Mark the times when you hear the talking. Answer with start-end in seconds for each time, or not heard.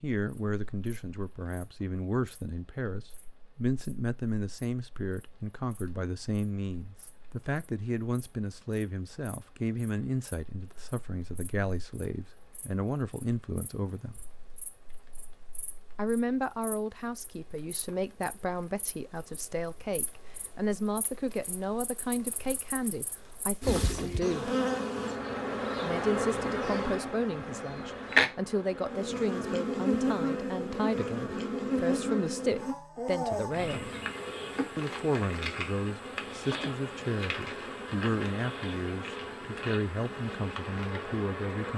0.0-14.2, 15.9-24.5, 25.8-33.9, 34.8-41.7.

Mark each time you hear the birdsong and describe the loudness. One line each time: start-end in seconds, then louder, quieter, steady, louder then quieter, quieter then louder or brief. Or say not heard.
not heard.